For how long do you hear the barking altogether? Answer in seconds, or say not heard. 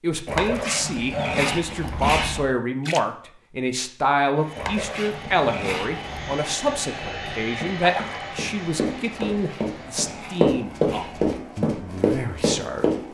6 s.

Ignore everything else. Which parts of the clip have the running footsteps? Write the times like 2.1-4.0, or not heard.
7.6-13.0.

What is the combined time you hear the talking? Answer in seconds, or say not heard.
13 s.